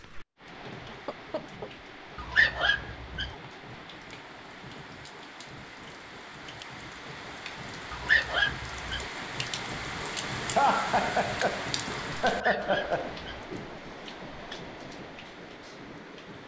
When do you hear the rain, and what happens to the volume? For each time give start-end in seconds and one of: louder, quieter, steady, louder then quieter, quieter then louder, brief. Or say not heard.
0.0-16.4 louder then quieter.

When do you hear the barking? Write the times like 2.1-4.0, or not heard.
2.1-3.4, 7.9-9.1, 12.2-13.4.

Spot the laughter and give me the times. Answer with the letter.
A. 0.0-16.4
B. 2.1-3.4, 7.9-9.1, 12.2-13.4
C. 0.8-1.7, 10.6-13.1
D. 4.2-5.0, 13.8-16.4
C.